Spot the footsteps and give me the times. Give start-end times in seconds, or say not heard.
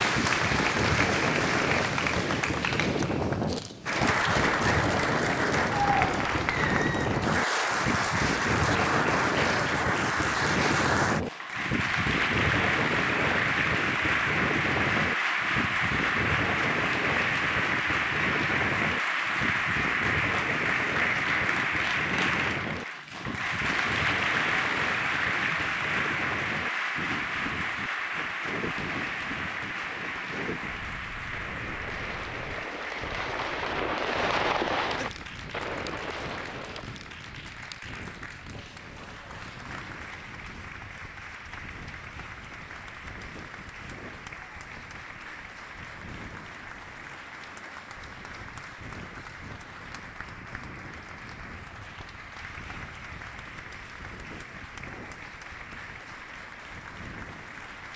not heard.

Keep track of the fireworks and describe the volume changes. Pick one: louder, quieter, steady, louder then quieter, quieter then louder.
louder then quieter.